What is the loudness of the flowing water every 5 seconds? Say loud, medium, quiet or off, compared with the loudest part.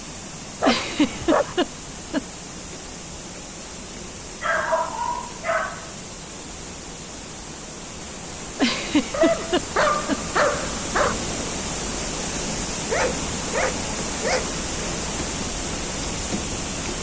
medium, medium, loud, loud.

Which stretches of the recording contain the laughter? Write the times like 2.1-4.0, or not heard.
0.6-2.2, 8.6-10.2.